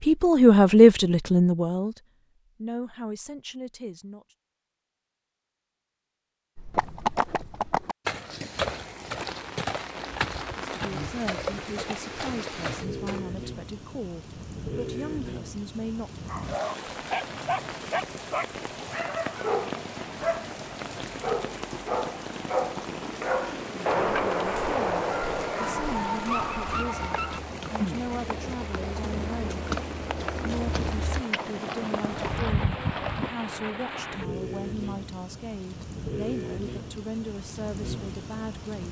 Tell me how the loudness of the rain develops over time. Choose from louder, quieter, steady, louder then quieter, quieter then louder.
steady.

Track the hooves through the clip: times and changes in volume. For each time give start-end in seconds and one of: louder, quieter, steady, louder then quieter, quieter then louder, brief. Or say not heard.
6.5-13.2 quieter
26.8-33.3 louder.